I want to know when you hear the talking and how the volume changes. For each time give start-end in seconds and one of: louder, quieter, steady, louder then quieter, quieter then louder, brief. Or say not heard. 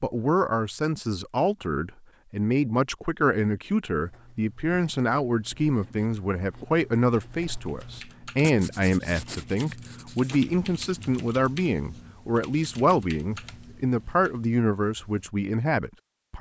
0.0-16.3 steady.